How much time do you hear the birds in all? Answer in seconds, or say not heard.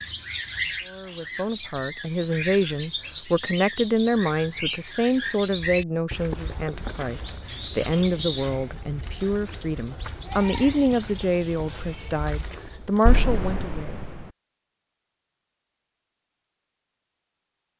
13 s.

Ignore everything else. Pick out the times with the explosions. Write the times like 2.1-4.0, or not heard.
13.1-14.2.